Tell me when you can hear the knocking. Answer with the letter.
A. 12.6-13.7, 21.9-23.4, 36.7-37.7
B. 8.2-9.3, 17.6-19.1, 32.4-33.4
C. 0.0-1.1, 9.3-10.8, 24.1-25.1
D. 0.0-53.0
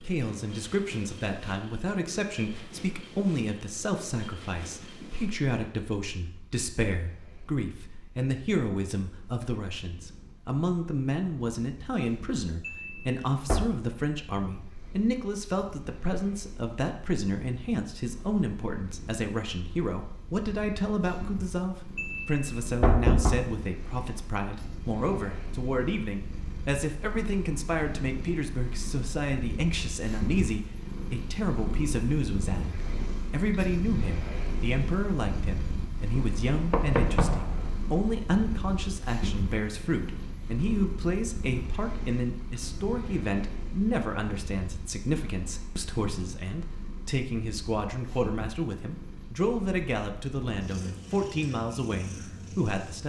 A.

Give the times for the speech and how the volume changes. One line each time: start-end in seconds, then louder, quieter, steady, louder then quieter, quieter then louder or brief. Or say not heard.
0.0-53.0 steady.